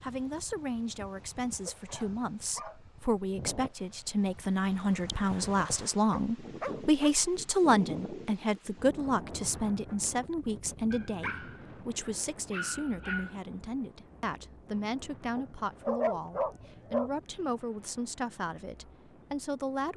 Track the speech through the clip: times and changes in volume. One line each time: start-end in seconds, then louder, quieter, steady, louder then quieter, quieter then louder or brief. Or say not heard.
0.0-19.9 louder then quieter.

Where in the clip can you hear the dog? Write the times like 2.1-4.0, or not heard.
1.6-2.8, 6.1-7.2, 10.9-13.3, 15.3-17.1.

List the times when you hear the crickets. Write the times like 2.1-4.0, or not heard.
not heard.